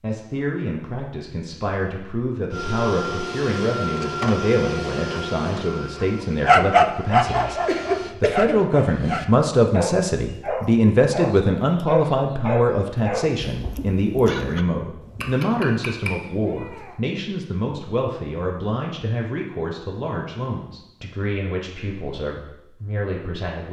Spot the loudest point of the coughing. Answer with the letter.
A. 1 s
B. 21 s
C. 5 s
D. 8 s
D.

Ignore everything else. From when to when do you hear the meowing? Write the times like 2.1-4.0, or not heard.
15.0-16.9.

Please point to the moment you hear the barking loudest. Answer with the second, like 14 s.
7 s.